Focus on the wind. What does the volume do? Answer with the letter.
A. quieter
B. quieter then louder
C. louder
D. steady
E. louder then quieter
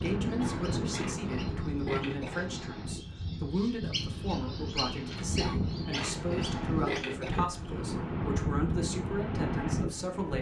B.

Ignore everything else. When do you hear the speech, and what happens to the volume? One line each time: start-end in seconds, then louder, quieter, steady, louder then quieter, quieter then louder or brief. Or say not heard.
0.0-10.3 steady.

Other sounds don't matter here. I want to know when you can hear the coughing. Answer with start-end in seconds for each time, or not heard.
0.3-2.5, 5.3-7.9.